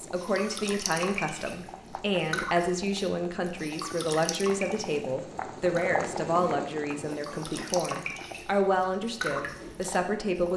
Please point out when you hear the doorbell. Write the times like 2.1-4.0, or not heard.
not heard.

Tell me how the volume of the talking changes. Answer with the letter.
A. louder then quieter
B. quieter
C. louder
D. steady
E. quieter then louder
D.